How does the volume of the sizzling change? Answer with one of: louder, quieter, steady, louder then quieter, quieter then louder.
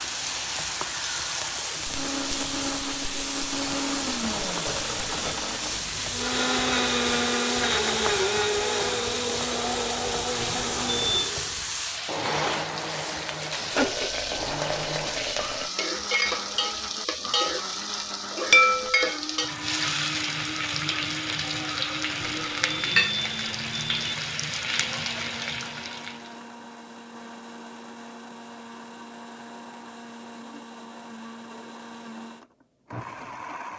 steady.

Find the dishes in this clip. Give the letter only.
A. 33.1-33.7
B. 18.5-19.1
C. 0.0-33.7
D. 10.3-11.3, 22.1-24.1
B.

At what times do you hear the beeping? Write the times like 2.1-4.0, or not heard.
10.3-11.3, 22.1-24.1.